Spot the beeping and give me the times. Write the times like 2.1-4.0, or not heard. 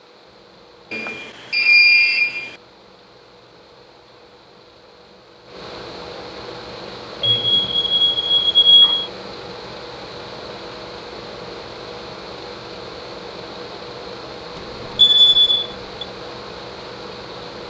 0.9-2.5, 7.2-9.1, 14.9-16.1.